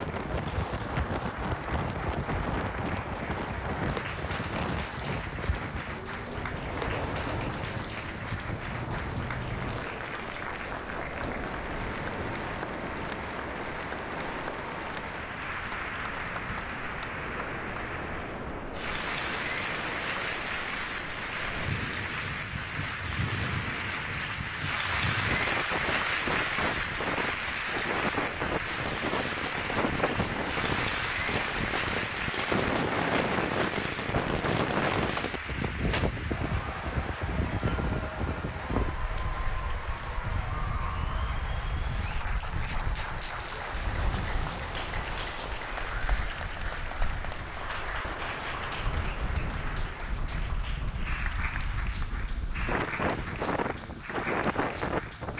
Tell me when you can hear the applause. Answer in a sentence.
You can hear the applause from 0.0 to 55.3 s.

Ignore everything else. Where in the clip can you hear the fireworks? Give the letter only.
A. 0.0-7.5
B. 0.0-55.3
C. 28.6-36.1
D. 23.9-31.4
C.